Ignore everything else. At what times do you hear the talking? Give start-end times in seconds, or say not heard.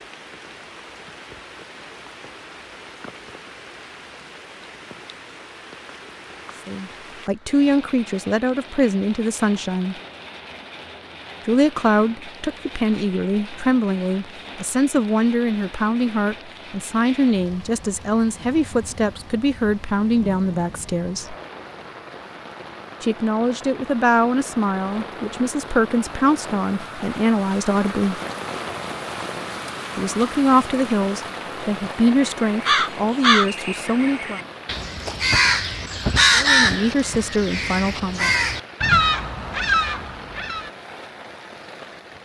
6.7-9.9, 11.4-21.4, 23.0-28.2, 29.9-34.4, 36.4-38.4.